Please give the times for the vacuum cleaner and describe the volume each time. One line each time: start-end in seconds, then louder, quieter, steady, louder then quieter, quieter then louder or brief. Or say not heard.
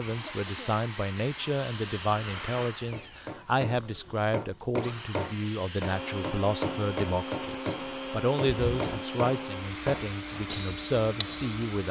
0.0-11.8 quieter then louder.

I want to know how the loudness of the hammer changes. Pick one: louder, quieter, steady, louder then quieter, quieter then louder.
steady.